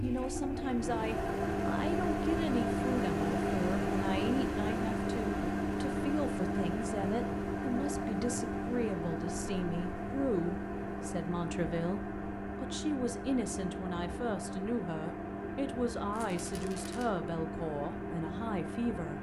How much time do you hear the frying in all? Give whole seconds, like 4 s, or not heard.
not heard.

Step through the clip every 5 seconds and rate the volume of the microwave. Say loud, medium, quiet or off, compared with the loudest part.
loud, loud, medium, medium.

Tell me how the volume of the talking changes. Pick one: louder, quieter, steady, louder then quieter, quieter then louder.
steady.